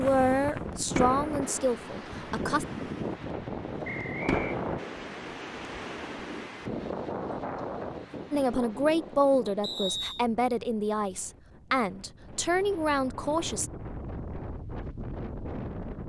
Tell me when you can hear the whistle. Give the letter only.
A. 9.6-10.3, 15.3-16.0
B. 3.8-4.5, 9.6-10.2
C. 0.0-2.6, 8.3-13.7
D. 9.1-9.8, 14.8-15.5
B.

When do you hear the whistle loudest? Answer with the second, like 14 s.
10 s.